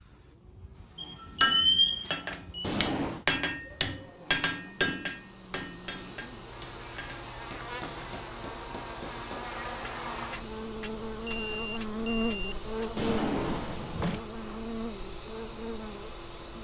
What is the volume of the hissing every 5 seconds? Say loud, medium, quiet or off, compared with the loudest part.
quiet, loud, loud, loud.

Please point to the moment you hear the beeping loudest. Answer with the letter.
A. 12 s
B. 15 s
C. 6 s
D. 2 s
D.